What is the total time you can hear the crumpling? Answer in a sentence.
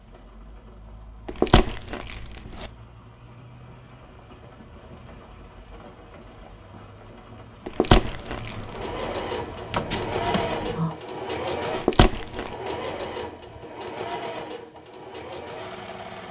The crumpling can be heard for 3 seconds in total.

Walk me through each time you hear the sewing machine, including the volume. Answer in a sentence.
The sewing machine can be heard from 8.6 to 16.2 s, getting quieter.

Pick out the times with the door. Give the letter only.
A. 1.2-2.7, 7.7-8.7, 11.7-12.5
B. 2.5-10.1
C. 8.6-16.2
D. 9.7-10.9
D.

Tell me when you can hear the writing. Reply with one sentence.
You can't hear the writing here.